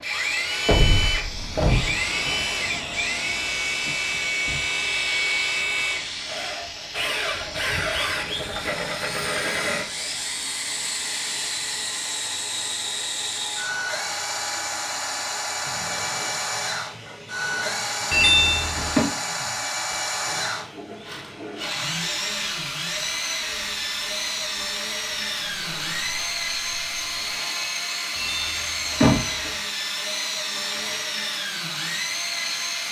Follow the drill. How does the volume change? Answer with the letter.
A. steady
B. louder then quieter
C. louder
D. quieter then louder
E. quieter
A.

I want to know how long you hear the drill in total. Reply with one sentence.
The drill can be heard for 33 seconds in total.